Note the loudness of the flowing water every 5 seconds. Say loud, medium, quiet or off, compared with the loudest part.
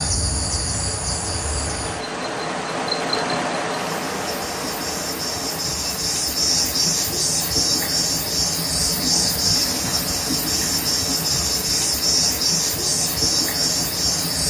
loud, medium, medium.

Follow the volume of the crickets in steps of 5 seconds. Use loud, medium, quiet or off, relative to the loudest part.
medium, loud, loud.